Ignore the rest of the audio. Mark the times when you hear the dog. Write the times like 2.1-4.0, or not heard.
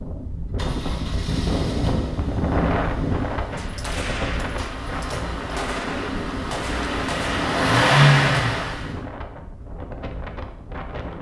not heard.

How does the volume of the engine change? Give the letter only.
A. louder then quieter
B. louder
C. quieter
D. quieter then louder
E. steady
D.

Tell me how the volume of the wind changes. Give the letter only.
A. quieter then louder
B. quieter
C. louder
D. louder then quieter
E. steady
B.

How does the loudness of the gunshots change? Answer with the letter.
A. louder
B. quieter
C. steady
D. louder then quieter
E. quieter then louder
E.